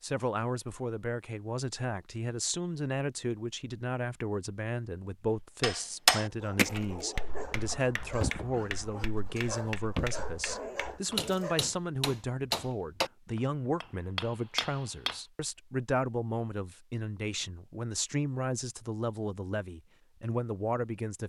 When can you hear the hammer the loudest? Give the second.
6 s.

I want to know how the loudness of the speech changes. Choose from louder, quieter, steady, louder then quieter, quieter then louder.
steady.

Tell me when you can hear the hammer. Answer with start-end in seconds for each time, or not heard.
5.6-15.2.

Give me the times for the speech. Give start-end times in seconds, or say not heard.
0.0-21.2.